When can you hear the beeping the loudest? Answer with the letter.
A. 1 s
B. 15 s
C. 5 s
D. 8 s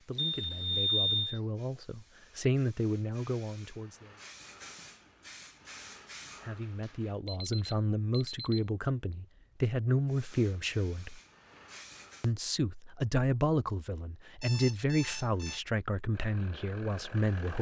A.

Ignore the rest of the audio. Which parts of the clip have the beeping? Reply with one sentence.
The beeping can be heard from 0.1 to 1.4 s, from 7.2 to 8.6 s and from 14.4 to 15.6 s.